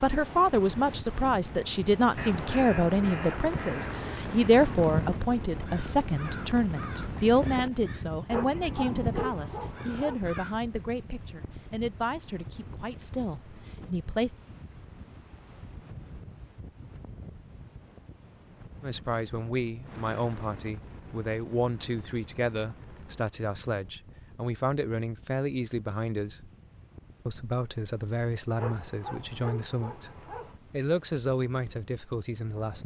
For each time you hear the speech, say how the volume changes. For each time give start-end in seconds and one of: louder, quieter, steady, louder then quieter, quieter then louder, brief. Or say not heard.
0.0-14.3 quieter
18.8-26.5 steady
27.2-30.1 brief
30.7-32.8 brief.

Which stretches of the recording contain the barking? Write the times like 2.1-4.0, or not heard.
8.3-10.2, 28.6-30.6.